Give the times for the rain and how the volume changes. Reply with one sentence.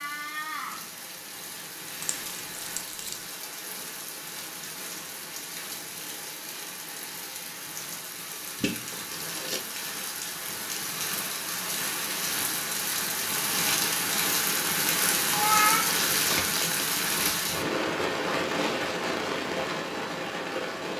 The rain can be heard from 0.0 to 20.9 s, getting louder.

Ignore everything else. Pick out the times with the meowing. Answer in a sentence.
The meowing can be heard from 15.3 to 16.0 s.